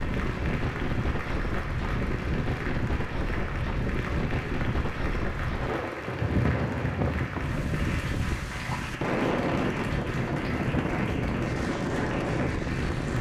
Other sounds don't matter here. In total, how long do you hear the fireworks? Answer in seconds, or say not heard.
not heard.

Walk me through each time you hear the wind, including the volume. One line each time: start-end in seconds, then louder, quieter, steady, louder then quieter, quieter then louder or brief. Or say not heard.
0.0-13.1 steady.